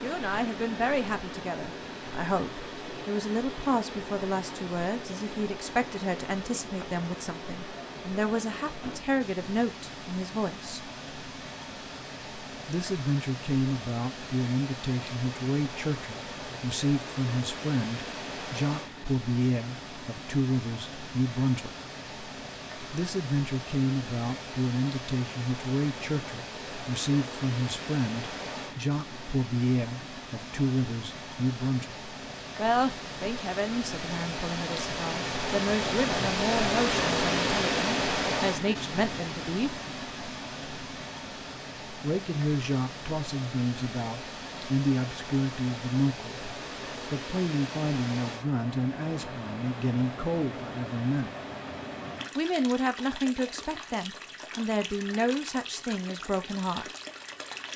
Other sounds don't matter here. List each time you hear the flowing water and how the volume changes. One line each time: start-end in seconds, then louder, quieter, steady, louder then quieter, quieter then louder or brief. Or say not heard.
0.0-57.7 louder then quieter.